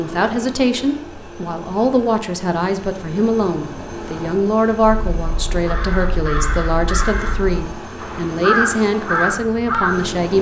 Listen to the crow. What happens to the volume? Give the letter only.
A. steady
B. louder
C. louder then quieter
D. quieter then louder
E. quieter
D.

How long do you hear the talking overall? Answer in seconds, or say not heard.
10 s.